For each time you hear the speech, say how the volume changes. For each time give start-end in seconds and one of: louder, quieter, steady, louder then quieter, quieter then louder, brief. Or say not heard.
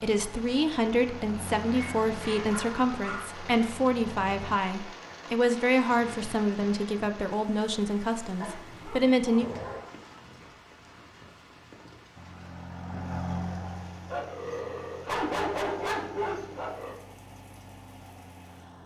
0.0-9.4 steady.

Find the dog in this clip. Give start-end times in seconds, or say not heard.
1.7-3.2, 8.4-9.9, 14.1-16.9.